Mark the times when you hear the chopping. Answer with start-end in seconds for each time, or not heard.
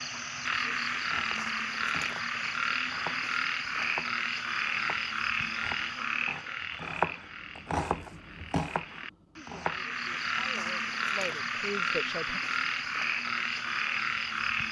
0.9-10.5.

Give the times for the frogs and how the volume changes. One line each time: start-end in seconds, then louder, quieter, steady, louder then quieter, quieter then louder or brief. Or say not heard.
0.0-14.6 quieter then louder.